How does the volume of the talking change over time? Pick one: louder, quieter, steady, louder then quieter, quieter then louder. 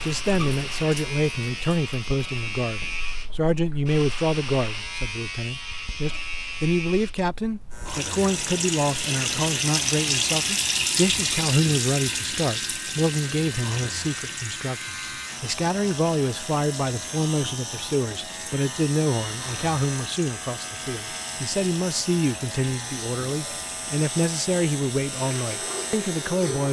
steady.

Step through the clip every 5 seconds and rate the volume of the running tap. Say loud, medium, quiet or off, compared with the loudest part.
quiet, loud, loud, quiet, quiet, medium.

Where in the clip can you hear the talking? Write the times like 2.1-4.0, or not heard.
0.0-26.6.